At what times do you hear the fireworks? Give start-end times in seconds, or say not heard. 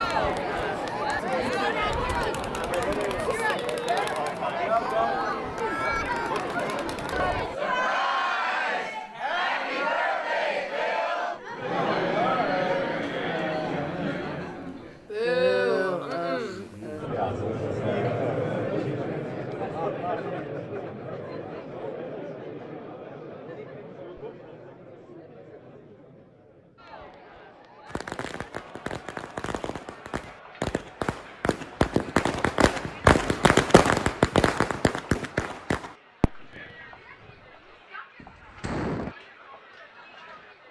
27.9-37.5, 38.2-39.1.